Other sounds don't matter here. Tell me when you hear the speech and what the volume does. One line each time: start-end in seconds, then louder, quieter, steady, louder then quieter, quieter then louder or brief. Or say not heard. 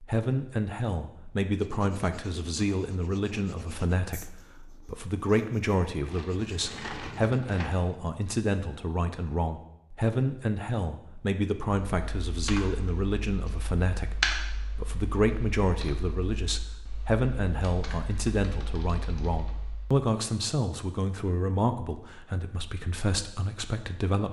0.0-24.2 steady.